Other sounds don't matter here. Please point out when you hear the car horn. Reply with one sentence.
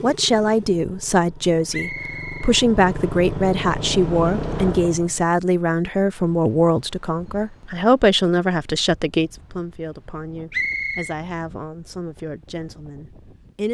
You can't hear the car horn here.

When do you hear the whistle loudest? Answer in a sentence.
The loudest moment of the whistle is at 11 seconds.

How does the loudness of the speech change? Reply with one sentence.
The loudness of the speech goes down.